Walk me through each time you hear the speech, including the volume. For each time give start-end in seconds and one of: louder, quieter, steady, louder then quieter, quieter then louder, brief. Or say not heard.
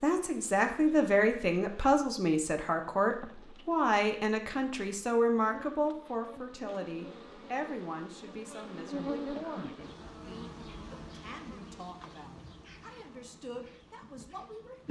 0.0-14.8 quieter.